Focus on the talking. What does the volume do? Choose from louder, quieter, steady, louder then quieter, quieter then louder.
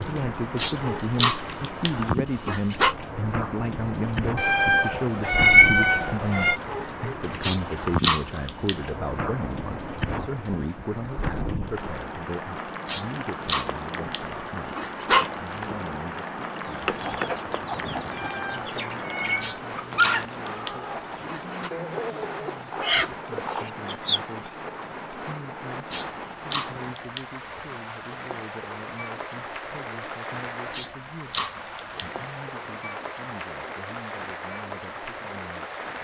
quieter.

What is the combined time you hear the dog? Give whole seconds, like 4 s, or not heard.
12 s.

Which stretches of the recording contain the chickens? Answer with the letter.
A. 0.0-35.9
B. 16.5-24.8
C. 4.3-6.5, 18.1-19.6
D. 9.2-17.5
B.